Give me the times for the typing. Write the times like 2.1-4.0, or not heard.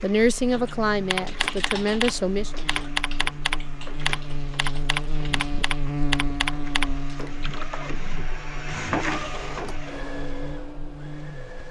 0.5-7.8.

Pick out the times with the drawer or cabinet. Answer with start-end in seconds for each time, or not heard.
9.2-9.8.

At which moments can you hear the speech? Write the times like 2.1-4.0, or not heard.
0.0-2.5.